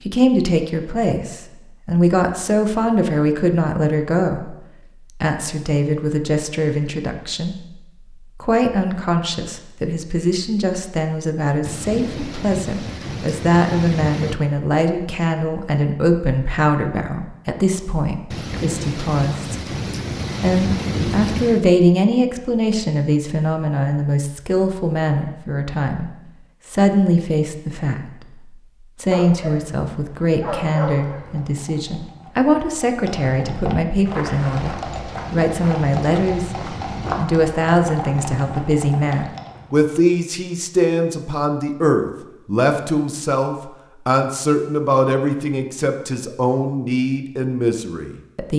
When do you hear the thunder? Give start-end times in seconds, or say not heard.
11.7-14.4, 18.3-21.6, 34.4-37.4.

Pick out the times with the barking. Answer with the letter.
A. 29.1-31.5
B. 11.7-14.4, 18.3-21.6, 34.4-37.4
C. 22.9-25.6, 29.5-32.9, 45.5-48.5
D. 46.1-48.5
A.